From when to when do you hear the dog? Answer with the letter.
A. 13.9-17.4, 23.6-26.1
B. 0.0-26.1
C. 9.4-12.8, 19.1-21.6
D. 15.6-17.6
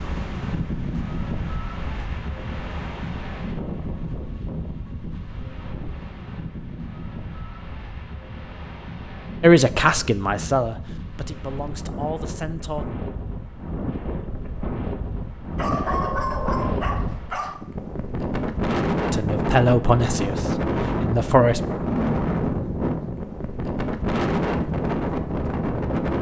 D.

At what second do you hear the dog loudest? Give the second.
16 s.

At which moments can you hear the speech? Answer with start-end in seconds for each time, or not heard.
9.4-12.8, 19.1-21.6.